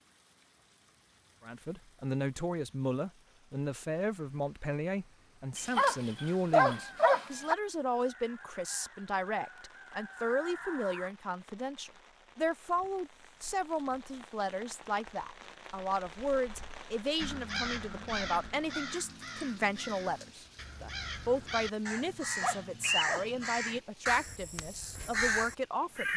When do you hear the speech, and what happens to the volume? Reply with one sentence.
You can hear the speech from 1.4 to 26.1 s, at a steady volume.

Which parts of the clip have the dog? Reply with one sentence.
The dog can be heard from 5.5 to 7.5 s and from 21.9 to 23.3 s.